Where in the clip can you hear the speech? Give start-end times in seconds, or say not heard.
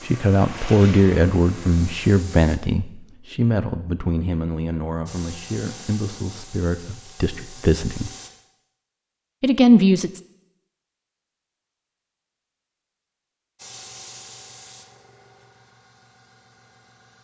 0.0-8.1, 9.4-10.2.